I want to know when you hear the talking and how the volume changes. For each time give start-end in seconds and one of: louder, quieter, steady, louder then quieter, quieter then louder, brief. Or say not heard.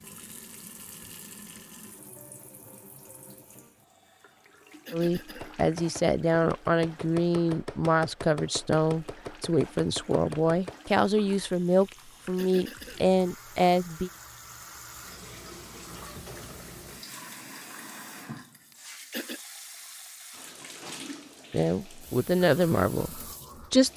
4.9-14.1 steady
21.5-23.9 brief.